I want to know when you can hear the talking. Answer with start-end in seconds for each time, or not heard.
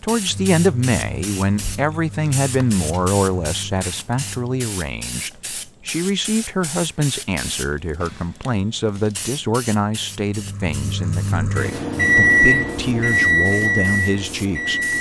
0.0-14.9.